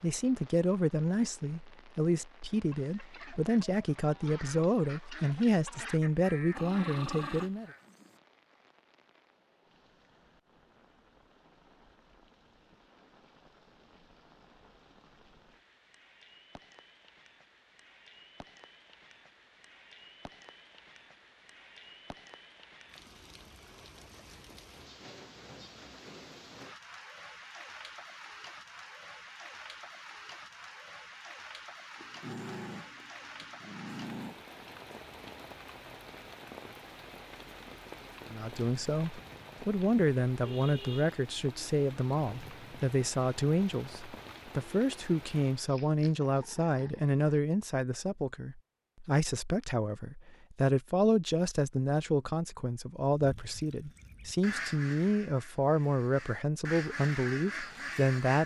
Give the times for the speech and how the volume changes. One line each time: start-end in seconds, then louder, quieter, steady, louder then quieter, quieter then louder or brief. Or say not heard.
0.0-7.7 steady
38.3-58.4 steady.